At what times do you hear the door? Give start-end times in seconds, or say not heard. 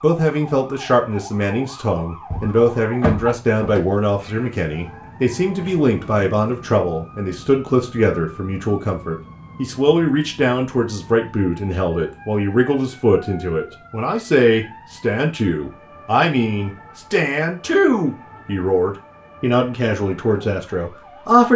2.3-3.8.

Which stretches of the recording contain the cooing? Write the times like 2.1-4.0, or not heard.
not heard.